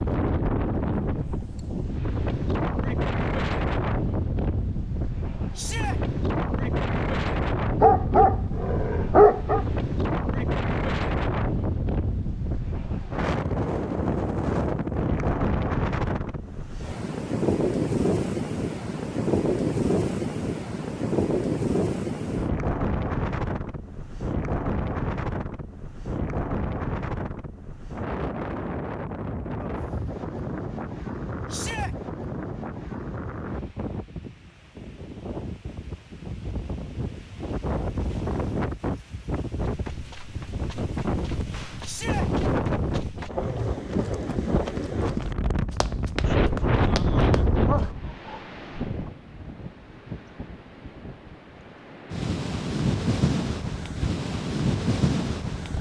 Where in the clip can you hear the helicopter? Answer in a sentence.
The helicopter can't be heard in this clip.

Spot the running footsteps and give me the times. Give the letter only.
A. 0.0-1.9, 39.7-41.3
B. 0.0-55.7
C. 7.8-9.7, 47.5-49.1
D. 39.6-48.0
D.